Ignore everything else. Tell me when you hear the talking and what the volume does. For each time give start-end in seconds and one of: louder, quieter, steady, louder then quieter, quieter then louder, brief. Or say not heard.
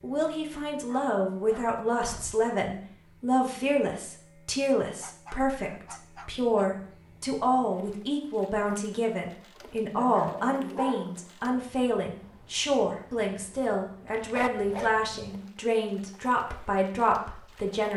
0.0-17.9 steady.